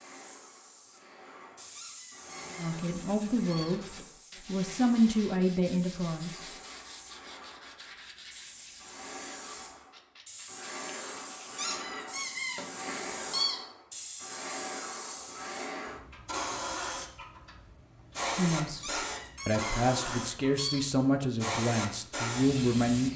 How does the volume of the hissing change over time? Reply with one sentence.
The loudness of the hissing goes up.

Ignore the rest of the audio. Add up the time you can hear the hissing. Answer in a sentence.
The hissing can be heard for 23 seconds in total.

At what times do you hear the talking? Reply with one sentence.
The talking can be heard from 2.5 to 6.4 s and from 18.3 to 23.1 s.